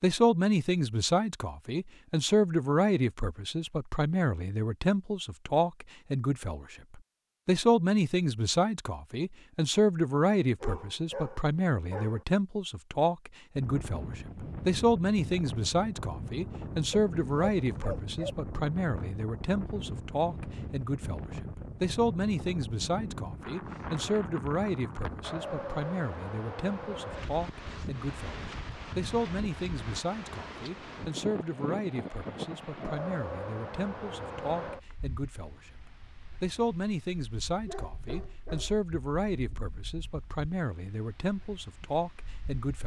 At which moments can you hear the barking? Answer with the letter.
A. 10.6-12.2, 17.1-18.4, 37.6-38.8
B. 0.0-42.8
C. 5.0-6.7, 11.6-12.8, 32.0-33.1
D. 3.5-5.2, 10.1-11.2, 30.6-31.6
A.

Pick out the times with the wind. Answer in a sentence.
The wind can be heard from 13.6 to 42.8 s.